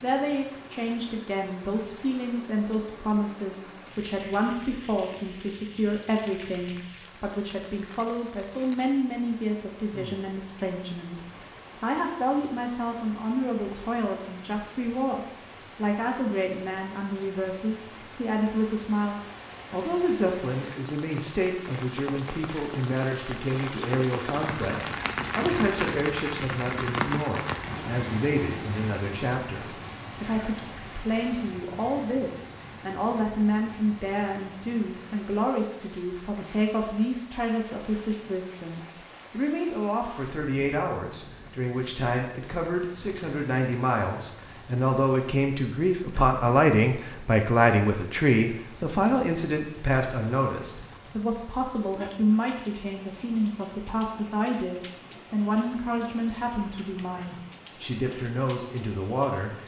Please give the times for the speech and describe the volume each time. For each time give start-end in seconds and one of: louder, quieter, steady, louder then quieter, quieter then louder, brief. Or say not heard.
0.0-59.6 steady.